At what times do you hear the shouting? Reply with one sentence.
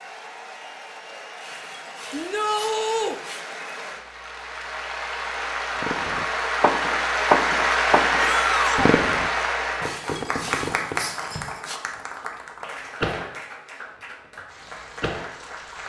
The shouting can be heard from 2.1 to 3.1 s and from 8.2 to 8.9 s.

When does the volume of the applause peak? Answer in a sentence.
The volume of the applause peaks at 8 seconds.